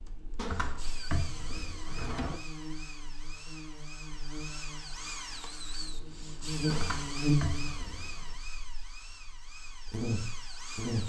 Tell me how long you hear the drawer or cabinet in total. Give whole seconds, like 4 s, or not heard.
4 s.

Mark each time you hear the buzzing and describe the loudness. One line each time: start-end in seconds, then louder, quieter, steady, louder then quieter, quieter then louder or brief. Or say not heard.
0.1-11.0 louder then quieter.